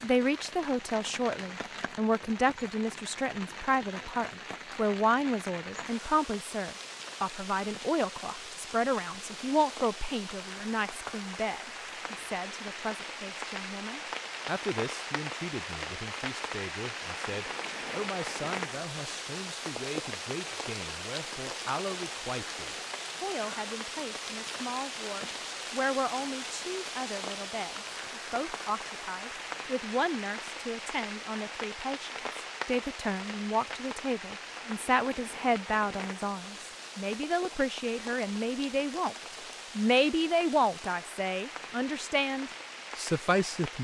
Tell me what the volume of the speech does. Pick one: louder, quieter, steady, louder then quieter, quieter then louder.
quieter then louder.